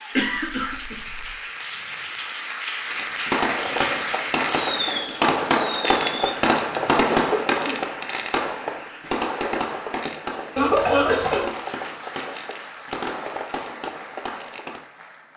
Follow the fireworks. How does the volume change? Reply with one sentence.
The volume of the fireworks goes down.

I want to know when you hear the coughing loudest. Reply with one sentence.
The loudest moment of the coughing is at 11 seconds.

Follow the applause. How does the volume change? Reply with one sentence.
The loudness of the applause goes down.